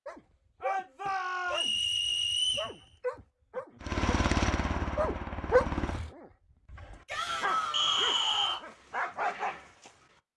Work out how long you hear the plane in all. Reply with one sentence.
You can hear the plane for 2 seconds altogether.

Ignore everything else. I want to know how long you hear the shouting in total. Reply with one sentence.
You can hear the shouting for 3 seconds altogether.